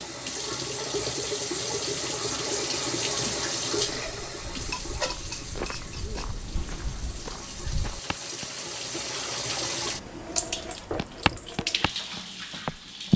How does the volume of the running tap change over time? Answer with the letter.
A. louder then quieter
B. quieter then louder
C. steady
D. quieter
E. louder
B.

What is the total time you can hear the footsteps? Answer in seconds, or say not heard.
7 s.